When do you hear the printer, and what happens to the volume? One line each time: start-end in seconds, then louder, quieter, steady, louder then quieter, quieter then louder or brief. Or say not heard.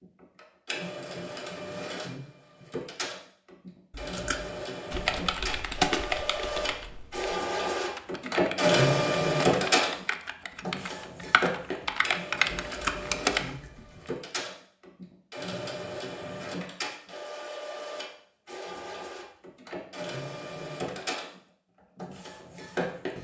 0.0-23.1 louder then quieter.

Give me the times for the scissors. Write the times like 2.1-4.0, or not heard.
4.0-4.5, 12.7-13.7.